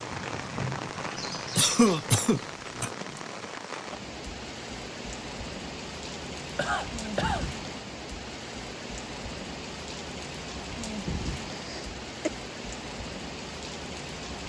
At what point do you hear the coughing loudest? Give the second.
2 s.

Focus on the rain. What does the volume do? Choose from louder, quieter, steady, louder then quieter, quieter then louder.
steady.